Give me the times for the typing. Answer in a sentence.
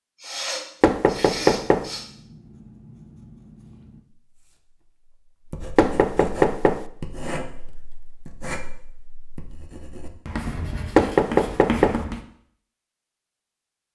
You can't hear the typing here.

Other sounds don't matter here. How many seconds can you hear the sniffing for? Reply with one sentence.
You can hear the sniffing for 2 seconds altogether.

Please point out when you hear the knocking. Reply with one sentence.
The knocking can be heard from 0.8 to 1.9 s, from 5.8 to 6.8 s and from 10.9 to 12.0 s.